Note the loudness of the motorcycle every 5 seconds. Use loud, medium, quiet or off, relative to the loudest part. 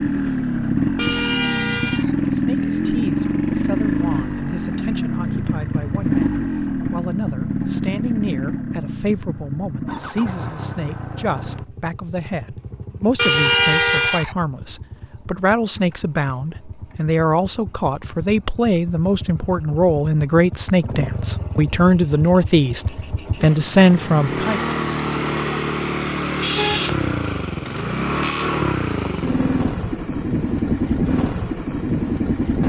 loud, loud, quiet, quiet, medium, loud, loud.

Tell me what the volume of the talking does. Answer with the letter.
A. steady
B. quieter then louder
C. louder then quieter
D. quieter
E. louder
E.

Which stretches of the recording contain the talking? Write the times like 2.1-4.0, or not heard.
2.2-24.6.